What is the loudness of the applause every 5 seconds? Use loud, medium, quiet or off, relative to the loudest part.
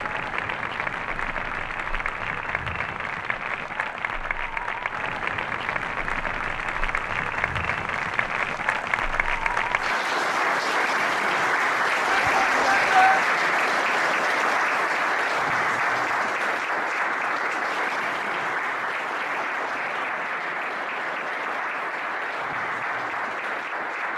medium, medium, loud, loud, medium.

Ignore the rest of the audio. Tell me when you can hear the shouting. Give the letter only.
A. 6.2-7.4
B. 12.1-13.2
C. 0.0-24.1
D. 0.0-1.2
B.